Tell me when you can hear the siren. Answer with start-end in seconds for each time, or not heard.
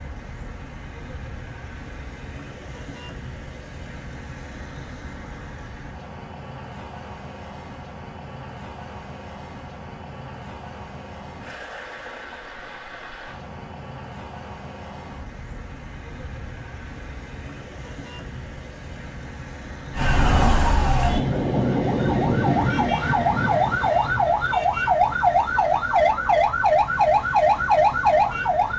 19.9-28.7.